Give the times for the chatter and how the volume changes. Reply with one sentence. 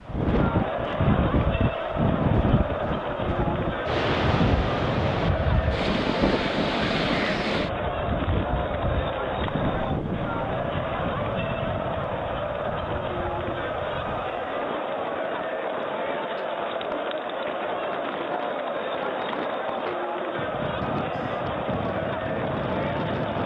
The chatter can be heard from 0.0 to 23.4 s, at a steady volume.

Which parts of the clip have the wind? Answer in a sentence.
You can hear the wind from 0.0 to 23.4 s.